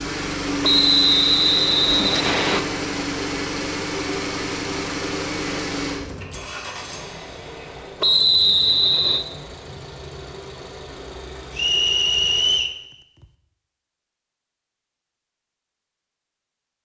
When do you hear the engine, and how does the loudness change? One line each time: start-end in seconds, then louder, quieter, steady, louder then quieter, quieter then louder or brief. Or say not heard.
0.0-12.6 quieter.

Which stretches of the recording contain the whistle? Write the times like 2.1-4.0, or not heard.
0.6-2.6, 8.0-9.2, 11.6-12.8.